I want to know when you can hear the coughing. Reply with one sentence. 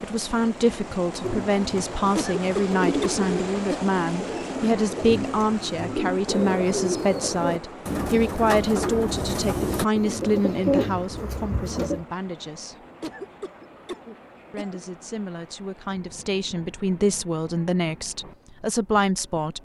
You can hear the coughing from 2.1 to 3.9 s and from 13.0 to 14.8 s.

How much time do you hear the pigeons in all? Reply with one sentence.
You can hear the pigeons for 11 seconds altogether.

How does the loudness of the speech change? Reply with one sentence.
The loudness of the speech goes down, then up.